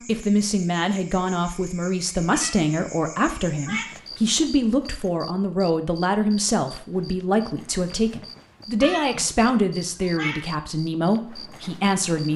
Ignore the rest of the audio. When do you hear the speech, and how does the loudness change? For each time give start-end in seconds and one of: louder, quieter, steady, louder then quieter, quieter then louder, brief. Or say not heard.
0.1-12.3 steady.